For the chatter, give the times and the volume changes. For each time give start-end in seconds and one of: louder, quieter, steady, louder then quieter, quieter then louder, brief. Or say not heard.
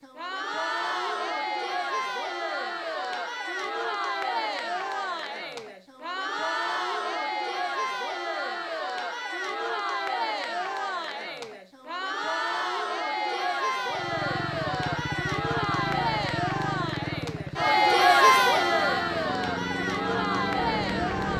0.0-21.3 louder.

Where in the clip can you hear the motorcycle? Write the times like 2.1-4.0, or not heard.
13.9-21.3.